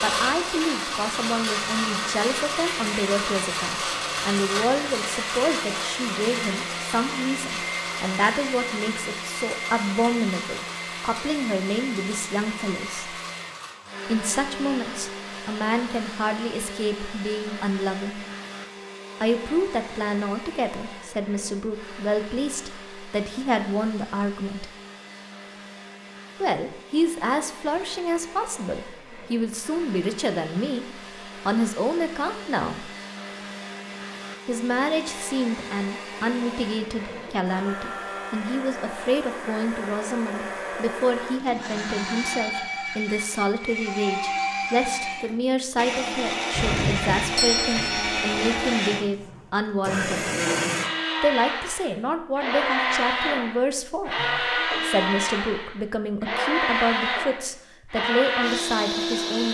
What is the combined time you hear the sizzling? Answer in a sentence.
You can't hear the sizzling here.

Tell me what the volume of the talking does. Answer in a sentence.
The loudness of the talking stays about the same.